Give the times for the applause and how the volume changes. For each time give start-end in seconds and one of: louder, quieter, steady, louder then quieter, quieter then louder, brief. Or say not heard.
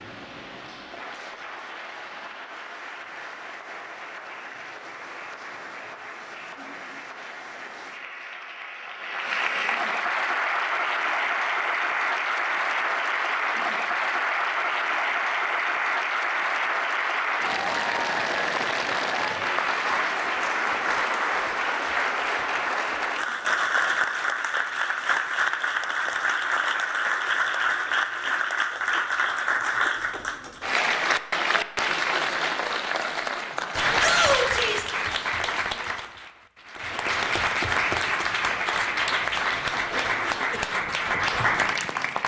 0.0-42.2 louder.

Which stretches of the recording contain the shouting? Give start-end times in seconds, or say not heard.
34.0-34.9.